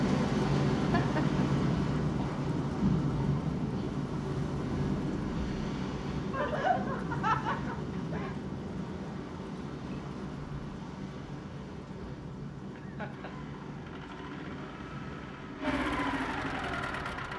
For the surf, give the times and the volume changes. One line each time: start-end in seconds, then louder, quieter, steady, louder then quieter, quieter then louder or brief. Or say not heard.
0.0-17.3 quieter.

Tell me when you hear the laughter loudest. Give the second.
7 s.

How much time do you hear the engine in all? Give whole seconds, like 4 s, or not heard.
4 s.